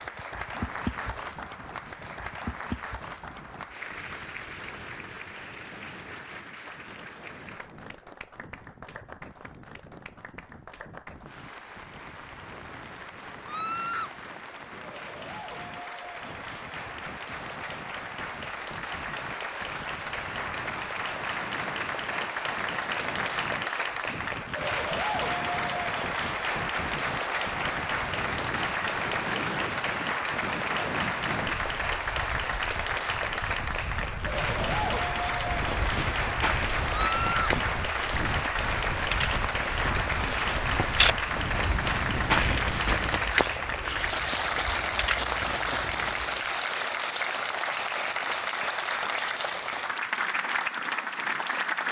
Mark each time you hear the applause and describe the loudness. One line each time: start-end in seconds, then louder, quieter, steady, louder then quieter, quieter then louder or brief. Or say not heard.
0.0-51.8 louder.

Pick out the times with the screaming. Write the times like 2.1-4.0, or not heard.
13.4-14.2, 36.9-37.5.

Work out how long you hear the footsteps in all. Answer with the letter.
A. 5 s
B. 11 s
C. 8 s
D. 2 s
B.